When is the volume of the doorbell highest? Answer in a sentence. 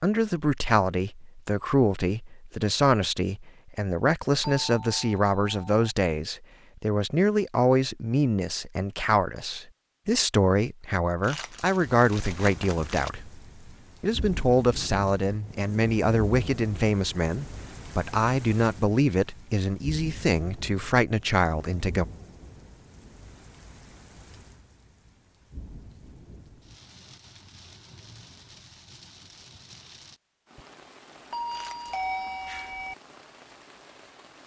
The loudest moment of the doorbell is at 32 seconds.